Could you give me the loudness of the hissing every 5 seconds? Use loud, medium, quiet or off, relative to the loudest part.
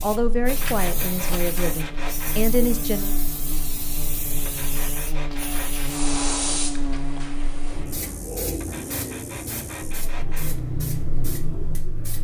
medium, loud, loud.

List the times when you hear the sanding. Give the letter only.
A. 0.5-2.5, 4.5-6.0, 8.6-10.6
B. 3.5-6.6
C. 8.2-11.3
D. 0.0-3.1
A.